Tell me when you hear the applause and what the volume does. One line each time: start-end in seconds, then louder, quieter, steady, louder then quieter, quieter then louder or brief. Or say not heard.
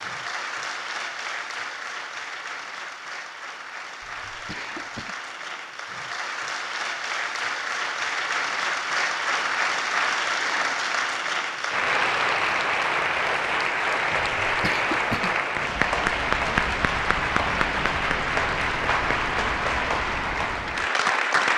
0.0-21.5 louder.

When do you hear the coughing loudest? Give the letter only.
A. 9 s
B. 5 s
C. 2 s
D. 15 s
D.